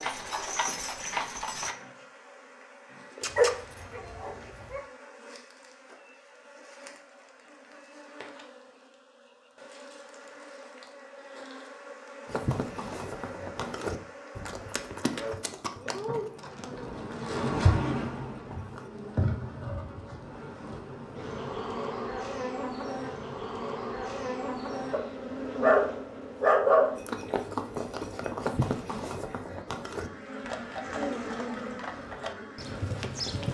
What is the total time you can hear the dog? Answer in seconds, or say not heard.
4 s.